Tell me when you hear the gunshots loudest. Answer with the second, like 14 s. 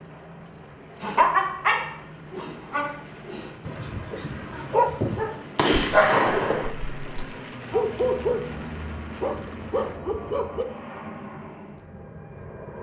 6 s.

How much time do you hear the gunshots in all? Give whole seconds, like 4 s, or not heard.
2 s.